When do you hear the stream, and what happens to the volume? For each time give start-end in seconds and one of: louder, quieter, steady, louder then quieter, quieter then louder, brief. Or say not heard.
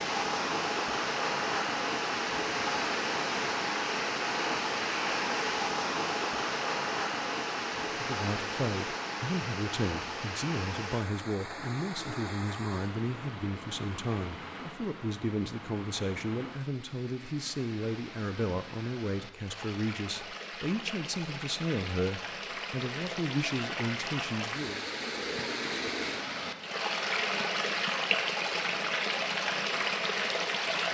0.0-30.8 quieter then louder.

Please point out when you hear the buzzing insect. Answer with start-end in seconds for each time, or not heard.
not heard.